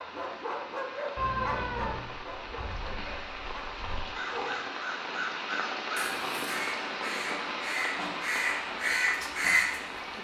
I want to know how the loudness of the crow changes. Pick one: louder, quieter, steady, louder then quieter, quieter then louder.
louder.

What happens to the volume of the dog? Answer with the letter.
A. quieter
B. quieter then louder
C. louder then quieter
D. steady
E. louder
A.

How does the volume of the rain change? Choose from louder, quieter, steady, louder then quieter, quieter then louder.
louder.